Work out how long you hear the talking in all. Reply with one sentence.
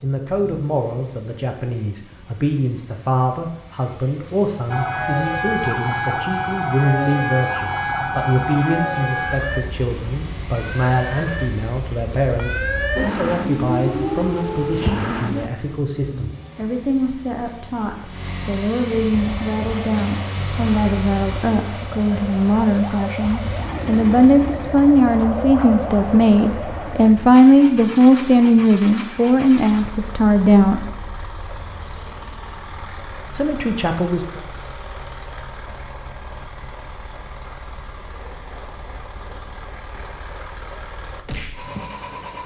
The talking can be heard for 32 seconds in total.